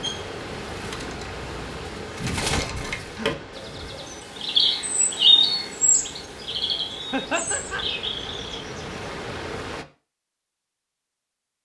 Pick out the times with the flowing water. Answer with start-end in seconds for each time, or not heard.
0.0-9.8.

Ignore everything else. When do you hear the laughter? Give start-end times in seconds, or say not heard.
2.1-4.0, 7.1-7.8.